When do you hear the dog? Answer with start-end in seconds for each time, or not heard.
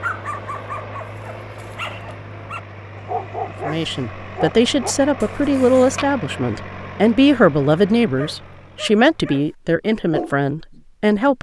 0.0-6.0, 8.2-9.4, 10.1-11.3.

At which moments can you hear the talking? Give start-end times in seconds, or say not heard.
3.5-11.3.